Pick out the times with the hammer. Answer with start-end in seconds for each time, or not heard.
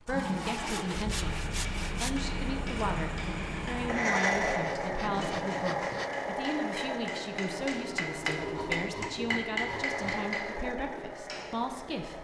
0.4-11.5.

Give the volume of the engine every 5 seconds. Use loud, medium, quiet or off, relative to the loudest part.
loud, loud, medium.